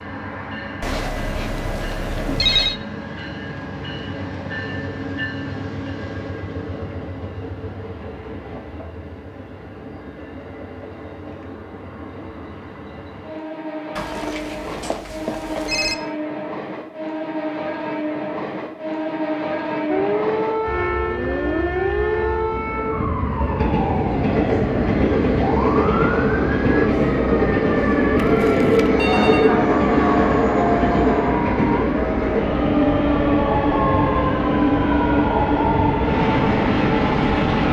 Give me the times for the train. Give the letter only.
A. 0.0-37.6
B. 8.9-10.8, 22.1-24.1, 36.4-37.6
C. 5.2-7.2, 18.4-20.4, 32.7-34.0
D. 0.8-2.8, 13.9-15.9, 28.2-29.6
A.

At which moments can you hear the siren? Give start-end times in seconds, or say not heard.
19.9-37.5.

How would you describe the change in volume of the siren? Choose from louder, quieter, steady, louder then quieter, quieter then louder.
steady.